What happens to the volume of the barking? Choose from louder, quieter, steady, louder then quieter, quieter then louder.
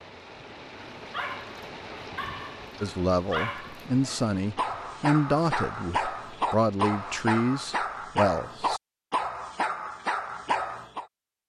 louder.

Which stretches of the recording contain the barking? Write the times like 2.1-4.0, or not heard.
0.9-11.1.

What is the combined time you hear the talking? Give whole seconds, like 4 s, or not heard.
6 s.